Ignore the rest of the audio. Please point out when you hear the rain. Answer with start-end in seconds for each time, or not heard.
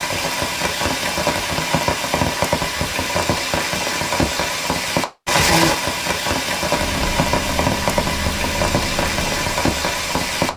0.0-10.5.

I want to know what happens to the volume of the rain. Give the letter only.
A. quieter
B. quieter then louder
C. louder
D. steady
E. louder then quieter
D.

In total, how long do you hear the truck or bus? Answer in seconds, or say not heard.
4 s.